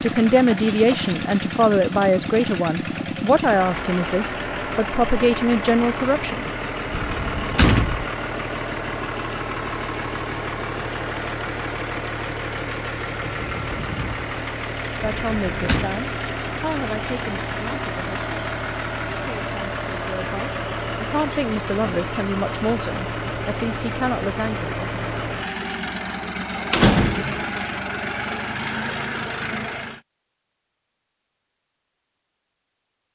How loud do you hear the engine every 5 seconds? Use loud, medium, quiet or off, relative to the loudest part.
loud, loud, loud, loud, loud, loud, off.